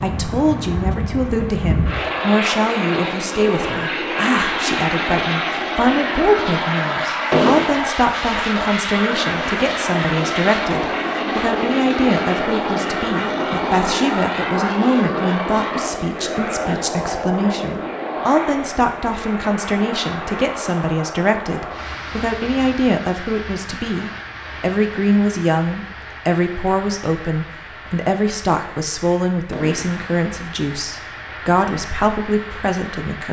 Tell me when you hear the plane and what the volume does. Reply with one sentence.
You can hear the plane from 0.0 to 33.2 s, getting quieter.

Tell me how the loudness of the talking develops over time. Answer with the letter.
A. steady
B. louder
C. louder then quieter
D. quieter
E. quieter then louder
A.